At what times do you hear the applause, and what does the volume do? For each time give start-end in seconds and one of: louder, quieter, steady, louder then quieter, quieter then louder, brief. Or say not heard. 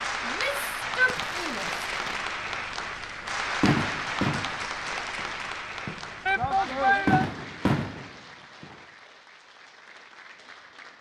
0.0-10.9 quieter.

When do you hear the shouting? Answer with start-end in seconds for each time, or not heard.
0.2-1.9, 6.2-7.2.